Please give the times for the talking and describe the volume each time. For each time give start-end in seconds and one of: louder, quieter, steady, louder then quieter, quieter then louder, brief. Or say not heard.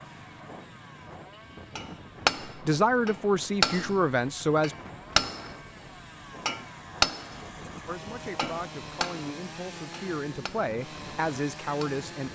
2.5-4.8 brief
7.8-12.2 louder.